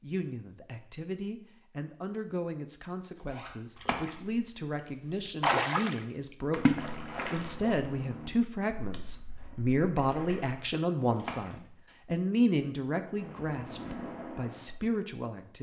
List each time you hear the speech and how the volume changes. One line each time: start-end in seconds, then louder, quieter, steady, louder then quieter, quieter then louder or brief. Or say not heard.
0.0-15.5 louder.